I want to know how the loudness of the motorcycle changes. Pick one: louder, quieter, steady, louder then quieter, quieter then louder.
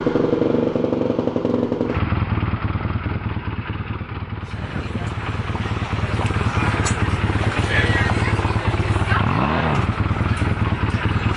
quieter then louder.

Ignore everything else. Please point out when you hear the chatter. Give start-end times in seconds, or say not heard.
4.4-11.3.